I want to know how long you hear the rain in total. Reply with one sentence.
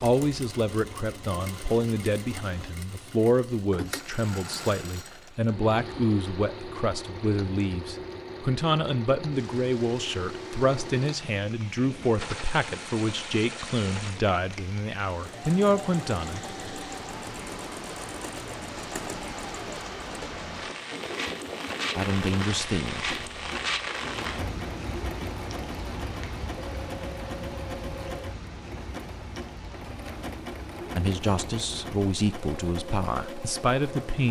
You can hear the rain for 29 seconds altogether.